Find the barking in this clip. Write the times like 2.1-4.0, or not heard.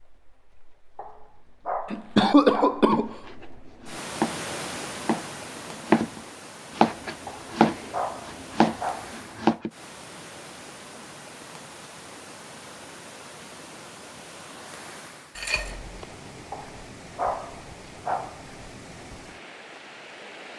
0.9-2.9, 7.2-9.2, 16.5-18.4.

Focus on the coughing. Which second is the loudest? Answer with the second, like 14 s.
2 s.